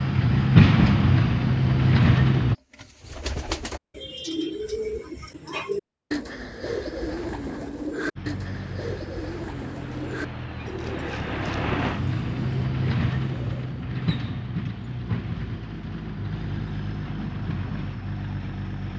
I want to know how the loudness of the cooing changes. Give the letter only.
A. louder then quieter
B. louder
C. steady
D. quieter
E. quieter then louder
D.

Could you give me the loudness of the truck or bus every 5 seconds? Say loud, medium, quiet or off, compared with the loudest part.
loud, quiet, medium, quiet.